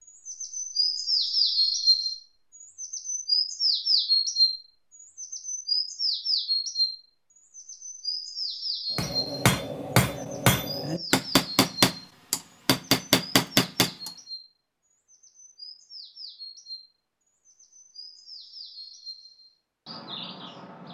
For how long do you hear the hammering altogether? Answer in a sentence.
You can hear the hammering for 5 seconds altogether.